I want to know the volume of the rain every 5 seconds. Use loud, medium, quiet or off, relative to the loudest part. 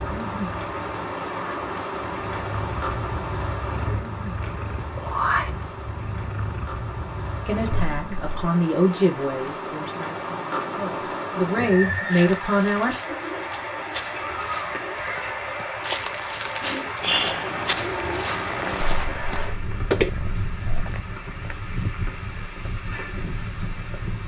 loud, medium, loud, loud, medium.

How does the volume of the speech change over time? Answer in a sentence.
The loudness of the speech goes down, then up.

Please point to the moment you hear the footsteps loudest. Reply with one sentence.
The loudest moment of the footsteps is at 20 seconds.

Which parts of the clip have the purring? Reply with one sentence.
You can hear the purring from 0.0 to 8.5 s and from 17.0 to 20.9 s.